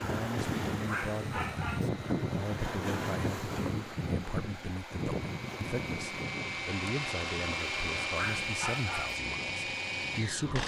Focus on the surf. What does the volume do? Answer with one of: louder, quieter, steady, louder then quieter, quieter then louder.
quieter.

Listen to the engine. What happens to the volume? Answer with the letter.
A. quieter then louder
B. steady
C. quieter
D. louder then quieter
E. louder
E.